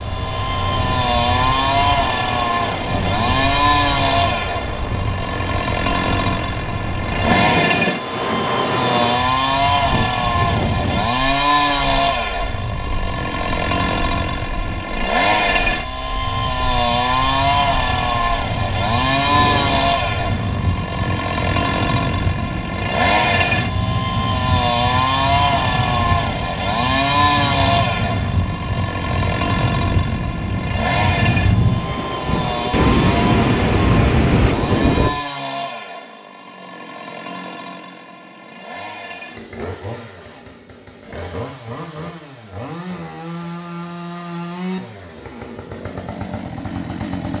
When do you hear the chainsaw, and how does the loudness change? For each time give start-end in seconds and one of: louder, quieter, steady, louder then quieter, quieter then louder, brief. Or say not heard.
0.0-47.3 quieter.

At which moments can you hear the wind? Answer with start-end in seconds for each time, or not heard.
0.0-35.1.